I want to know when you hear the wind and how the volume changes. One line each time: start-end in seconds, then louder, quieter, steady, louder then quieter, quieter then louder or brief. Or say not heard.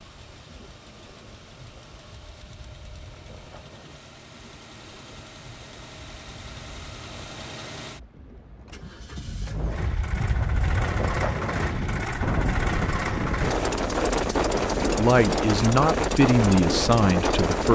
0.0-17.7 louder.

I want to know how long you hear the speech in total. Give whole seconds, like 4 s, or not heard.
3 s.